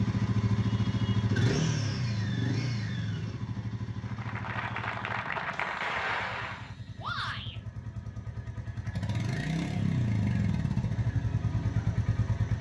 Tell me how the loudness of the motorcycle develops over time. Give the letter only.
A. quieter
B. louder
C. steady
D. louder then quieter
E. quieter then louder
E.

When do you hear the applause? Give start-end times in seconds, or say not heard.
4.0-6.8.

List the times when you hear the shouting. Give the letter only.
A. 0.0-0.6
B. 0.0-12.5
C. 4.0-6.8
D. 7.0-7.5
D.